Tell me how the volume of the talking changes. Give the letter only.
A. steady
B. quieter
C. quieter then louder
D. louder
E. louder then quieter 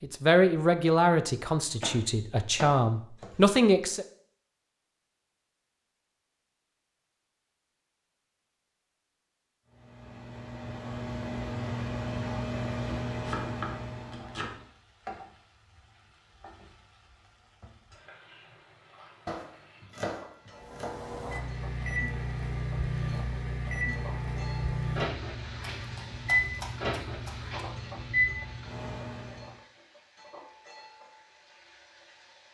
C.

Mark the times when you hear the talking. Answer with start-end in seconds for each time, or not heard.
0.0-4.0.